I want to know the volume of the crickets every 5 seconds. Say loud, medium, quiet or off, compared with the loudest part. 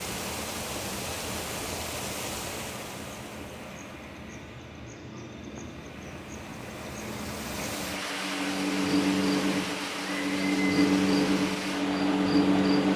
quiet, medium, loud.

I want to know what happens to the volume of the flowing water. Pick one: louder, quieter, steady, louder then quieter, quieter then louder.
quieter then louder.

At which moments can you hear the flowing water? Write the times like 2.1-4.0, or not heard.
0.0-12.9.